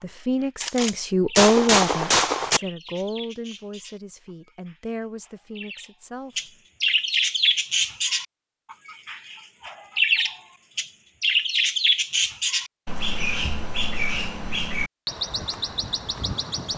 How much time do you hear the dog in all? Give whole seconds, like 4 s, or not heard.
not heard.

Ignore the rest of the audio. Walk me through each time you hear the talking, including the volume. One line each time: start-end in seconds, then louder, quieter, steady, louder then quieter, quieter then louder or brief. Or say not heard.
0.0-6.5 quieter.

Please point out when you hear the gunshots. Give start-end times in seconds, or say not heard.
0.6-2.6.